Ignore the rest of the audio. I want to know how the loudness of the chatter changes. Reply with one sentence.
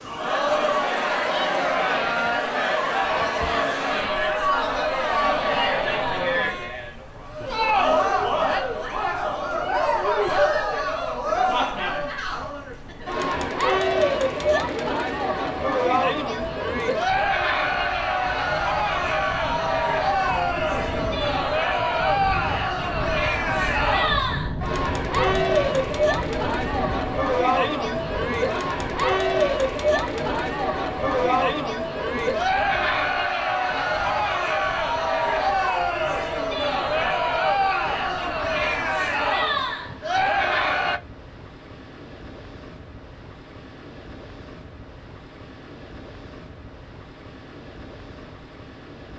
The loudness of the chatter stays about the same.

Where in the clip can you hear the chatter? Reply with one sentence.
You can hear the chatter from 0.0 to 41.0 s.